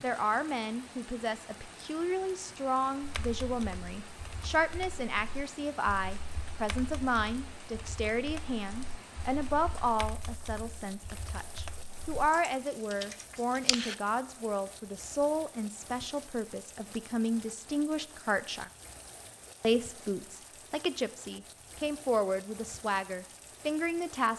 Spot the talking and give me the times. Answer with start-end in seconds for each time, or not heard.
0.0-18.7, 19.6-24.3.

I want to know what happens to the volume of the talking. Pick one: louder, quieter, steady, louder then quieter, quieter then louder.
steady.